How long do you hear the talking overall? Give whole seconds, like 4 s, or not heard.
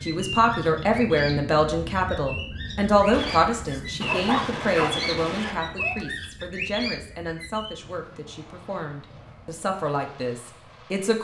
11 s.